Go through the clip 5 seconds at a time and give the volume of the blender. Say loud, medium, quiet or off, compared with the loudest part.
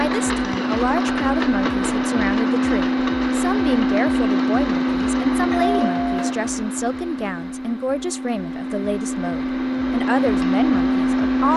loud, medium, loud.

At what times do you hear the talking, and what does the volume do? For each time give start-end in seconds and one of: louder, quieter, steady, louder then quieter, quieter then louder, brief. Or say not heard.
0.0-11.5 steady.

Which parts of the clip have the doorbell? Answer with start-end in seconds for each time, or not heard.
5.5-6.3.